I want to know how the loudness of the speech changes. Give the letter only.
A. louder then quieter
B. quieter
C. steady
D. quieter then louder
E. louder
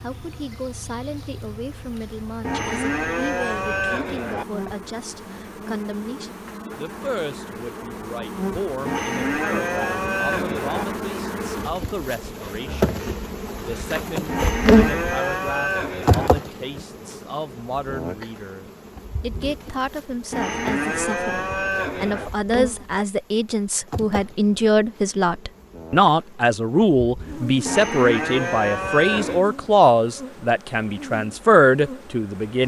E.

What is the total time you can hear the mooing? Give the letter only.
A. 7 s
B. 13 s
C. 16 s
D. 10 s
D.